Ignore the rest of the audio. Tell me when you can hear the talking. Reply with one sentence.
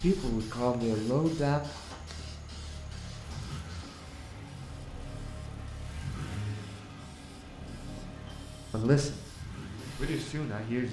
You can hear the talking from 0.0 to 1.6 s and from 8.7 to 10.8 s.